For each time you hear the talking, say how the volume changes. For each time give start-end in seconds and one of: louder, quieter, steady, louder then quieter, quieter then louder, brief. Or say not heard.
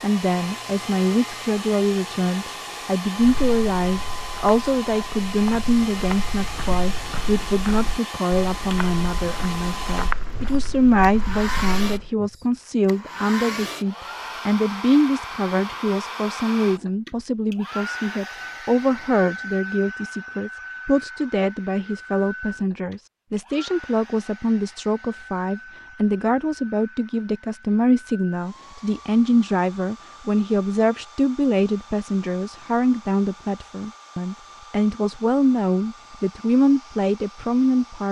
0.0-38.0 steady.